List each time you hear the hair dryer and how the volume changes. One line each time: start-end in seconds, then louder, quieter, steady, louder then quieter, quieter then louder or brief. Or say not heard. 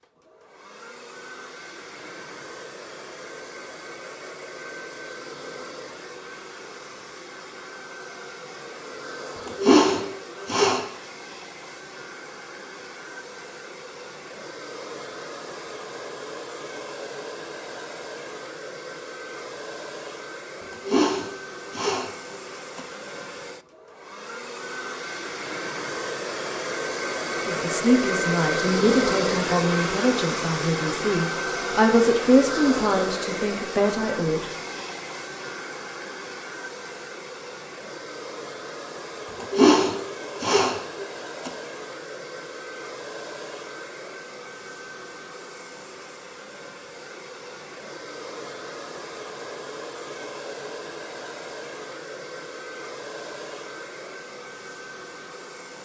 0.0-55.8 louder then quieter.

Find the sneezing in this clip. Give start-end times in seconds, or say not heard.
9.4-10.8, 20.7-22.8, 39.4-41.5.